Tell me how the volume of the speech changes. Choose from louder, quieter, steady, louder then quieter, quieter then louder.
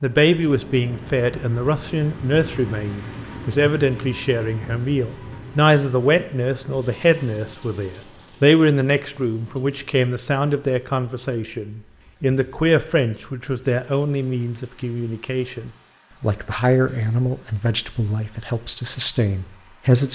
steady.